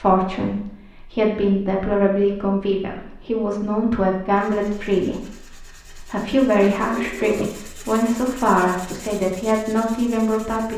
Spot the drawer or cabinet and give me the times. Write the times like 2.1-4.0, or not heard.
6.6-7.5.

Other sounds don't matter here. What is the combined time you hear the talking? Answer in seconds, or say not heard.
11 s.